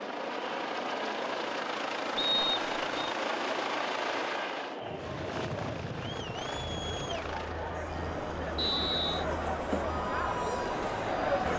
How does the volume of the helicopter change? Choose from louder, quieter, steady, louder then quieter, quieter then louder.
quieter.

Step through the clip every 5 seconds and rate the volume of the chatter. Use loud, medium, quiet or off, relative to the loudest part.
medium, medium, loud.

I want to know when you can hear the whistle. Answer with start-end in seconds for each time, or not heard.
2.1-3.1, 8.6-9.2.